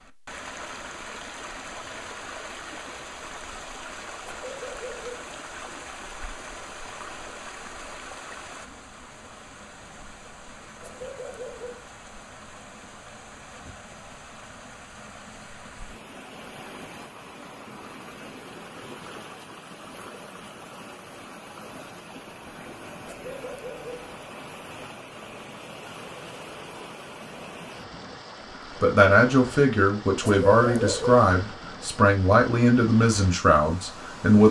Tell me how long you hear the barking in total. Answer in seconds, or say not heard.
4 s.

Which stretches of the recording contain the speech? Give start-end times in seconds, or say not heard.
28.8-34.4.